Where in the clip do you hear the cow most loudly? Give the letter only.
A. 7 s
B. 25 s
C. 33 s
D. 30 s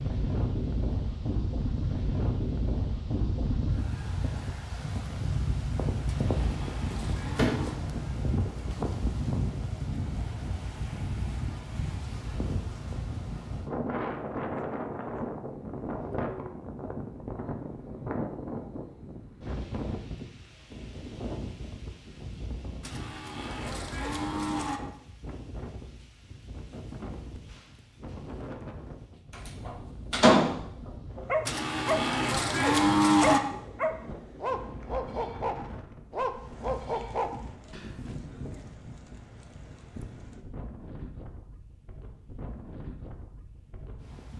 C.